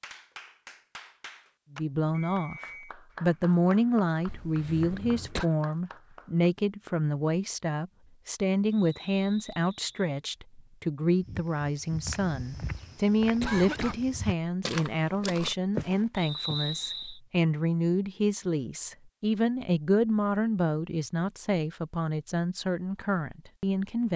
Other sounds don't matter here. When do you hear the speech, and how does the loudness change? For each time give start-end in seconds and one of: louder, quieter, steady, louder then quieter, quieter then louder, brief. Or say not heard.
1.7-2.6 brief
3.2-24.1 steady.